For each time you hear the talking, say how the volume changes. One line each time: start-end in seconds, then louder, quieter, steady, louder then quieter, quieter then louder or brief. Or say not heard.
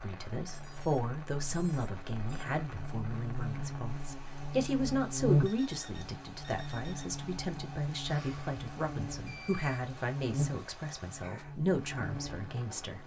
0.0-13.0 steady.